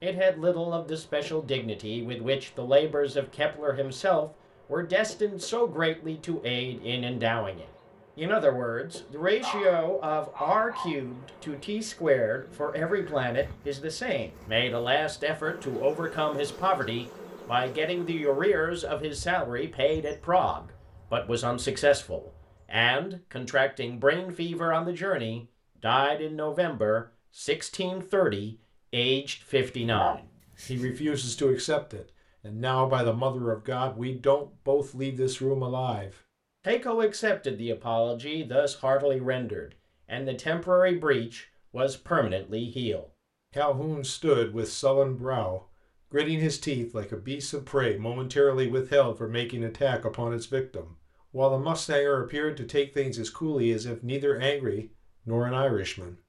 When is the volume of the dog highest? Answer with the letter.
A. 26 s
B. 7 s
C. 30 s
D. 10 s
C.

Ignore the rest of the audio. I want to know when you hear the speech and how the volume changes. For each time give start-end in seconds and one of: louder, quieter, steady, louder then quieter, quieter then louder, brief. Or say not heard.
0.0-56.1 steady.